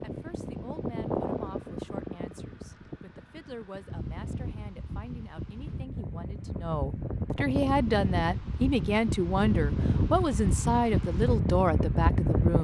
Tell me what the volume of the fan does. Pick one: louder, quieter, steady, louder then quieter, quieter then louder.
quieter then louder.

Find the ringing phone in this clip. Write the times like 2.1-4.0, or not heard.
not heard.